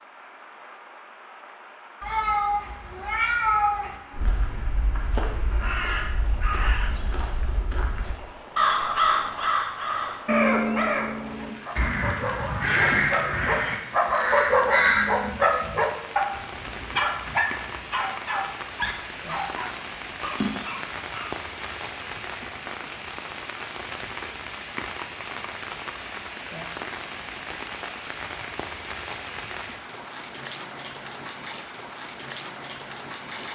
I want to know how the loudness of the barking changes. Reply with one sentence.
The loudness of the barking goes up, then down.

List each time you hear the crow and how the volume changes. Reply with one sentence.
The crow can be heard from 4.1 to 15.7 s, getting louder.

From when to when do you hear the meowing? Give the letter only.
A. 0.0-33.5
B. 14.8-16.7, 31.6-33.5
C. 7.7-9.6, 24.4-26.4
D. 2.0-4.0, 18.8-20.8
D.